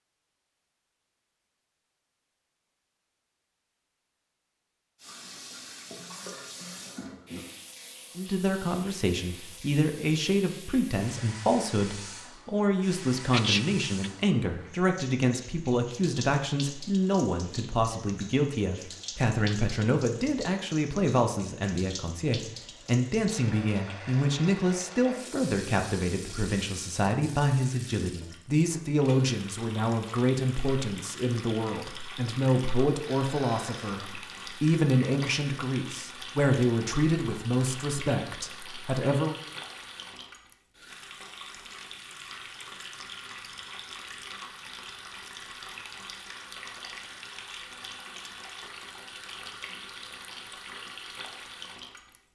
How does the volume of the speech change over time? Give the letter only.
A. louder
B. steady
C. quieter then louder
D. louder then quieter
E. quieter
B.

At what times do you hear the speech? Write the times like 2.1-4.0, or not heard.
8.2-39.4.